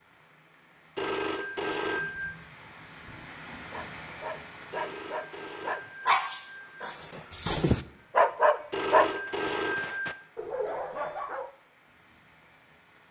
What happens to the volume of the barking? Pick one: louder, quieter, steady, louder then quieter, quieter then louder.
louder then quieter.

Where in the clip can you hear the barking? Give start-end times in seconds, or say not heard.
3.7-11.5.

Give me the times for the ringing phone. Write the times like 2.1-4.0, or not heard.
0.9-2.4, 4.7-6.8, 8.7-10.2.